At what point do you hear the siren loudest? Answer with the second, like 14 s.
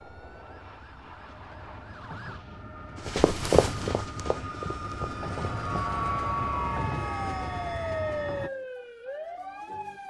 8 s.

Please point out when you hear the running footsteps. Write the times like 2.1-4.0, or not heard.
3.0-5.9.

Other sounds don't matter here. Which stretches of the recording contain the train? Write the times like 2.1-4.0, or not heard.
0.0-8.5.